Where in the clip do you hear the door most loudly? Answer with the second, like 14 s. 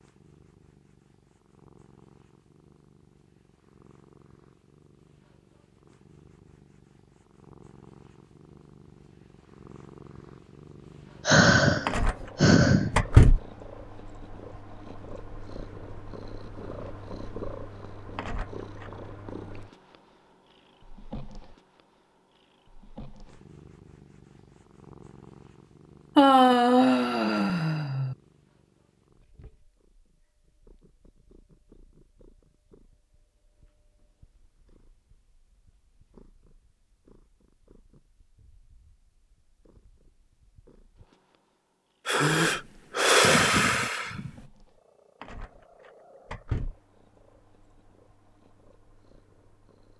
13 s.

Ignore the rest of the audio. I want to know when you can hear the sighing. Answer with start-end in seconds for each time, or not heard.
11.2-13.1, 26.1-28.1, 42.0-44.3.